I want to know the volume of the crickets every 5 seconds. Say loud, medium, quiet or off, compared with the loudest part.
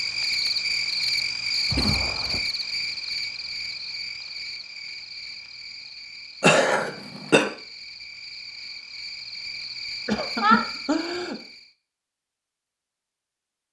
loud, medium, medium.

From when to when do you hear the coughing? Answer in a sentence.
The coughing can be heard from 1.7 to 2.4 s, from 6.4 to 7.5 s and from 10.1 to 11.3 s.